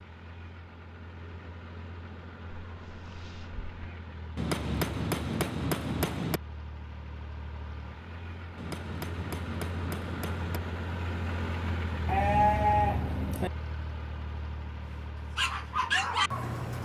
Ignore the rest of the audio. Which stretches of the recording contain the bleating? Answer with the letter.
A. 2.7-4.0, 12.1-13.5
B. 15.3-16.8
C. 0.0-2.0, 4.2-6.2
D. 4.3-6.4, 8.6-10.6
A.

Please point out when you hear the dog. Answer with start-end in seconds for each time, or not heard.
15.3-16.8.